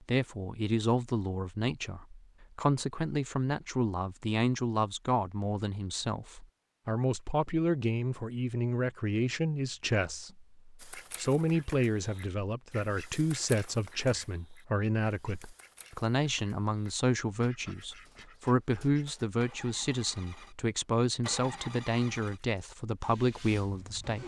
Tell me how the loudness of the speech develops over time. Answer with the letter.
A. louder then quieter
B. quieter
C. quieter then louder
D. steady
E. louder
D.